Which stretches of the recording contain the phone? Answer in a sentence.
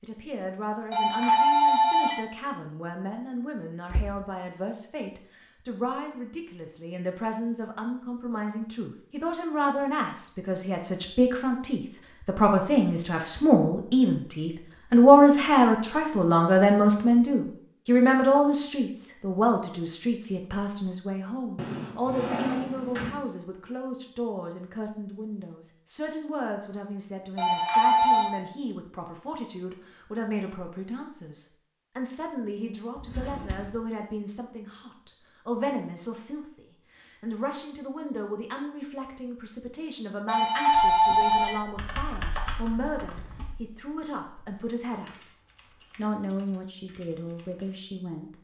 You can hear the phone from 0.9 to 2.2 s, from 27.4 to 28.3 s and from 40.2 to 41.6 s.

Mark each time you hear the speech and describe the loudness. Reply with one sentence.
You can hear the speech from 0.0 to 45.3 s, getting louder then quieter; and briefly from 46.0 to 48.3 s.